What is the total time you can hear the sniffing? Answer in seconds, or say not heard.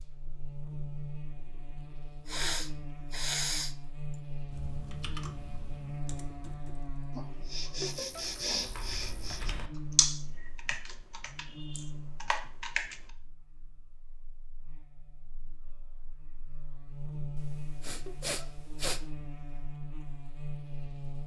6 s.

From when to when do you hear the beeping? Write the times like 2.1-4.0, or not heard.
not heard.